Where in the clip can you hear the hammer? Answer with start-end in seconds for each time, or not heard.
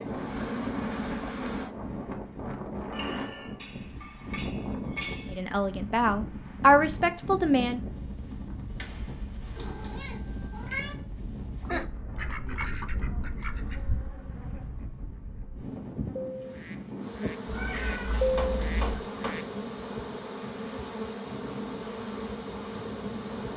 3.5-5.4, 8.8-9.9, 17.9-19.4.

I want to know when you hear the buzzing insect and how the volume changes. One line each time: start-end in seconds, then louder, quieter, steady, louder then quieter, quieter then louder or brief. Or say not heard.
0.0-1.7 brief
13.5-23.5 louder.